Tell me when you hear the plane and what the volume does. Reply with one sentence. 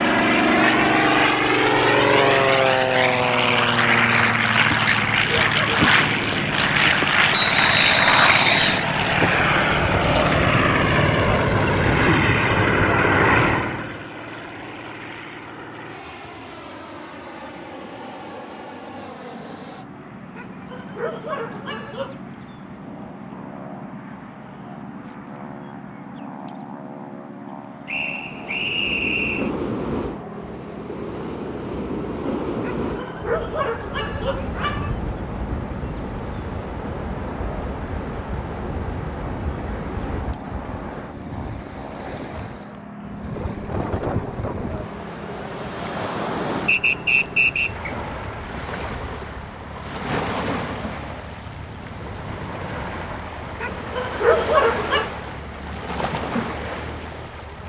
You can hear the plane from 0.0 to 57.6 s, getting quieter.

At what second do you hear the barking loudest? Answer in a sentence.
The volume of the barking peaks at 54 seconds.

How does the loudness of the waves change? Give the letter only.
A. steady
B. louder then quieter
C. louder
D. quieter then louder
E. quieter
A.